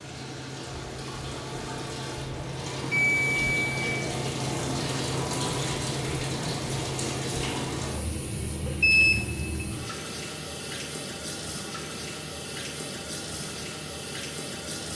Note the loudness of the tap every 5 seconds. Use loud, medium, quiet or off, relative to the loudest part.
loud, loud, medium.